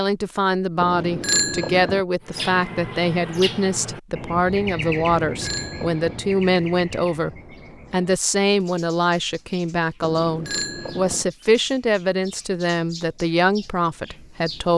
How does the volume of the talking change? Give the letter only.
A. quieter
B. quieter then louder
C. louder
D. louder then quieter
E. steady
E.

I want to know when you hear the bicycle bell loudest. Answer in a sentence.
The volume of the bicycle bell peaks at 1 second.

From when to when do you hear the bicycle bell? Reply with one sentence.
You can hear the bicycle bell from 0.8 to 2.0 s, from 5.2 to 6.2 s and from 10.0 to 11.2 s.